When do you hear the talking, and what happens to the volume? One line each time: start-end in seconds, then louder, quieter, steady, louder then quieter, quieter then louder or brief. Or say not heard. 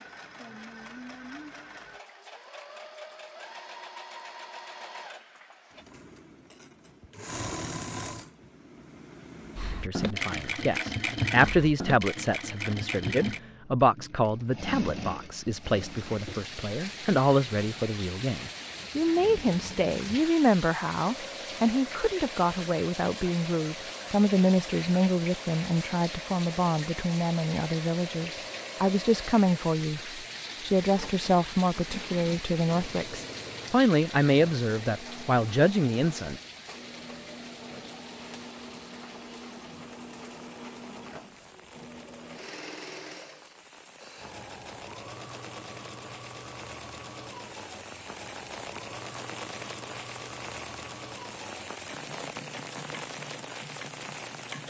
9.8-36.4 steady.